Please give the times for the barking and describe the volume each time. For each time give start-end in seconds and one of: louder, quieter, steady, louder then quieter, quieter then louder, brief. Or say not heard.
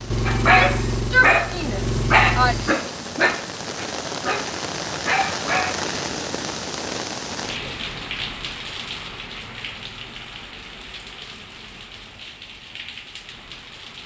0.2-5.8 quieter then louder.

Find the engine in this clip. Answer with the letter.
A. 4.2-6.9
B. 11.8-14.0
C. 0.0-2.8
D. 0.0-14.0
C.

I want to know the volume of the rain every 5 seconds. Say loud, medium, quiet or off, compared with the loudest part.
loud, loud, medium.